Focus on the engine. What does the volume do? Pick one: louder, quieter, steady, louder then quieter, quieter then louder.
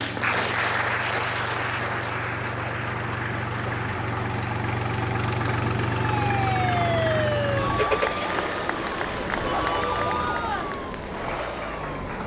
louder then quieter.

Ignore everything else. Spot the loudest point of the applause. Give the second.
1 s.